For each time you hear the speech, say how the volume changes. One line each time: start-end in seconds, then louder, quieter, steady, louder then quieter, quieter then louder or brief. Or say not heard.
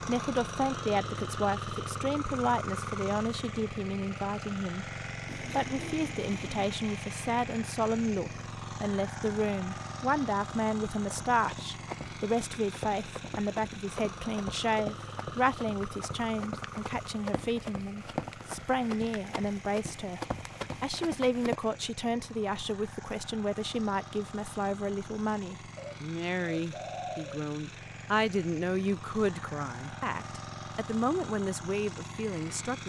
0.1-32.8 steady.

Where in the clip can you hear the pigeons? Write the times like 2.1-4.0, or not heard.
5.2-6.8, 25.8-27.4.